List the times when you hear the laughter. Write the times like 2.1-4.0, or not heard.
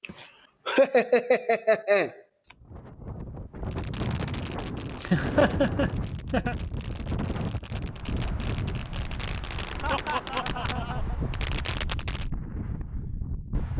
0.0-2.1, 5.0-6.5, 9.8-11.2.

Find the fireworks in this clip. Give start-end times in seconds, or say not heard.
3.6-12.3.